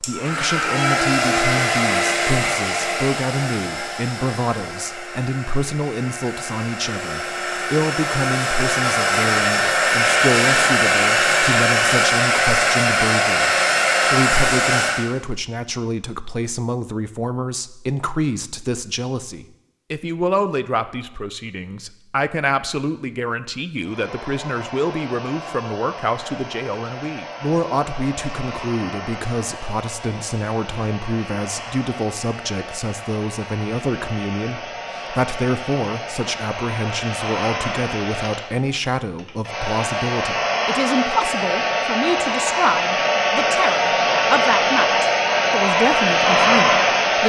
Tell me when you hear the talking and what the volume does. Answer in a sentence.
The talking can be heard from 0.0 to 47.2 s, at a steady volume.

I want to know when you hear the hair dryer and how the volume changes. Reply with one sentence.
You can hear the hair dryer from 0.0 to 15.1 s, getting quieter then louder; and from 23.8 to 47.2 s, getting louder.